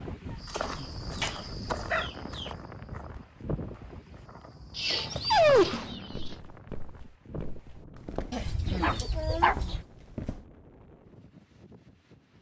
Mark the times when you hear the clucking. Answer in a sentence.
You can hear the clucking from 0.5 to 2.5 s, from 4.7 to 6.4 s and from 8.3 to 9.8 s.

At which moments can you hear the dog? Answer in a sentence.
You can hear the dog from 0.2 to 2.1 s, from 5.1 to 5.9 s and from 8.8 to 9.6 s.